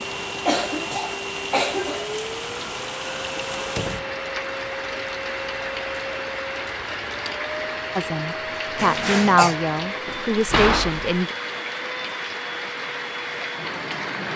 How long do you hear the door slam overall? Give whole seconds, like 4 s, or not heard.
2 s.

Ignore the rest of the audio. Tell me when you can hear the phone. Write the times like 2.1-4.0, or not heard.
not heard.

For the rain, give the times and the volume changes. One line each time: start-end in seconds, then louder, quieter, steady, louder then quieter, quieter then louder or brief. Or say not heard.
0.0-14.3 steady.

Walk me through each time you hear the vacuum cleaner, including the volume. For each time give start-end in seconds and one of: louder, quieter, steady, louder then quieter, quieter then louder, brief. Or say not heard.
0.0-14.3 steady.